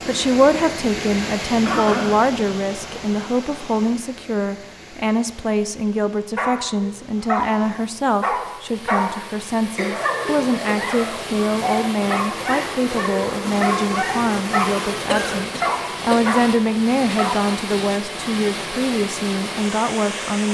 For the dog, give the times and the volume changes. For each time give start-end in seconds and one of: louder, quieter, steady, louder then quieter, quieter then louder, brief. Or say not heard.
6.3-17.5 steady.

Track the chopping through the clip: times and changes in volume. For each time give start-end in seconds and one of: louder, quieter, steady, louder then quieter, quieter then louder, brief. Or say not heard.
not heard.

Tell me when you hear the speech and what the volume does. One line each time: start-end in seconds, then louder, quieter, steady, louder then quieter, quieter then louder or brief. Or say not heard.
0.1-20.4 steady.